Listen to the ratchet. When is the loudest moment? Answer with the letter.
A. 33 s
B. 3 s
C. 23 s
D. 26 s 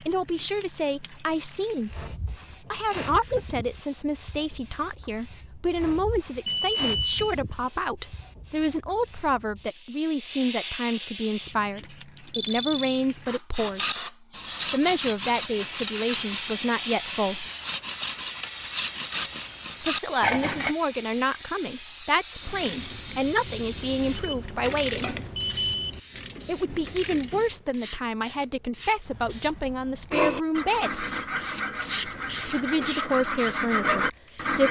D.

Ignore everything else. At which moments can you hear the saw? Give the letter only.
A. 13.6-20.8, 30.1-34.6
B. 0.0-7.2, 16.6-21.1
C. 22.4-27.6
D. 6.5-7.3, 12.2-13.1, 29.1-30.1
A.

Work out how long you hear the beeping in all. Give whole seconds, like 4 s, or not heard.
3 s.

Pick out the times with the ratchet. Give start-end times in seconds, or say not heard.
22.4-27.6.